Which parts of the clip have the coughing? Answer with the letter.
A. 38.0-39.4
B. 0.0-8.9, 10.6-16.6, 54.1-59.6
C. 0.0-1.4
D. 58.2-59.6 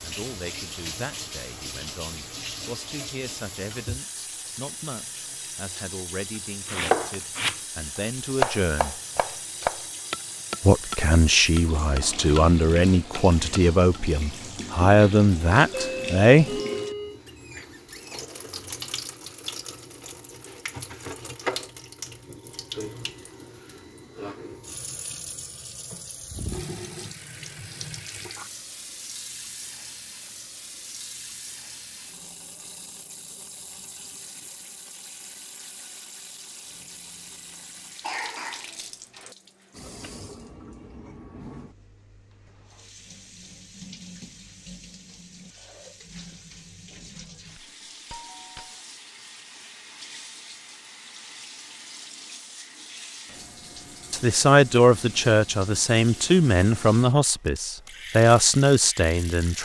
A.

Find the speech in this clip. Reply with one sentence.
The speech can be heard from 0.0 to 8.9 s, from 10.6 to 16.6 s and from 54.1 to 59.6 s.